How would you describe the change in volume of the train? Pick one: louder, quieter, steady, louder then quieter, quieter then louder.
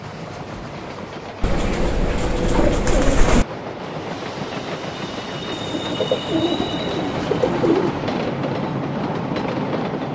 louder.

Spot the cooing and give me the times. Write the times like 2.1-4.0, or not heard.
1.4-3.5, 5.5-8.0.